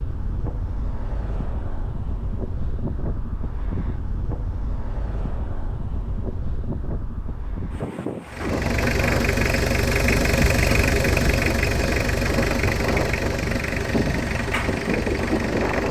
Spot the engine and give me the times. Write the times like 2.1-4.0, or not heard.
8.2-15.8.